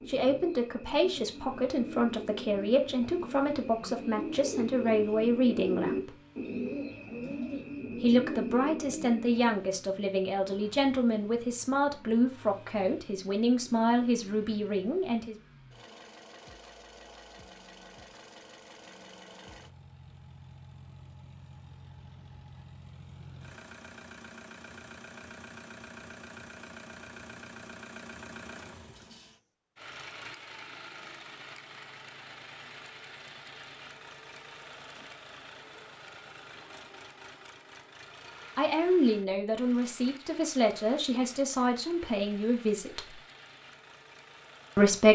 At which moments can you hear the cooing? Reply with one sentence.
You can hear the cooing from 0.0 to 9.6 s.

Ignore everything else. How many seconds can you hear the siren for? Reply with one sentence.
The siren can't be heard in this clip.